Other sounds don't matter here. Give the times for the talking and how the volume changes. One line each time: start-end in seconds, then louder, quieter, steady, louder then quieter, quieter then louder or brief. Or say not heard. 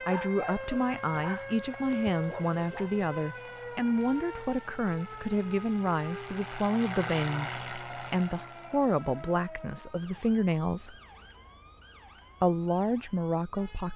0.1-10.9 steady
12.4-13.9 brief.